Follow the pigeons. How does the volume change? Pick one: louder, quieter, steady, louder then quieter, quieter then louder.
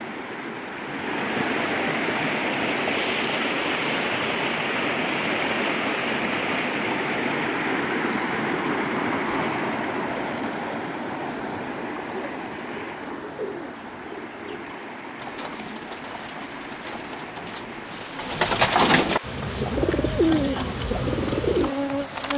louder.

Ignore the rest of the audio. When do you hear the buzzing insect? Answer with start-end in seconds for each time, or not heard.
19.2-22.3.